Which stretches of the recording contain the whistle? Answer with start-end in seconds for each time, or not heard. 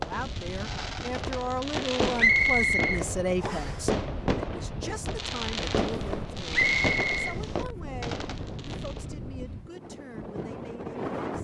2.1-3.8, 6.5-7.3.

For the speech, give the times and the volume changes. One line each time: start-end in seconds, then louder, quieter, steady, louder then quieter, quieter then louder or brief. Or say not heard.
0.0-11.3 quieter.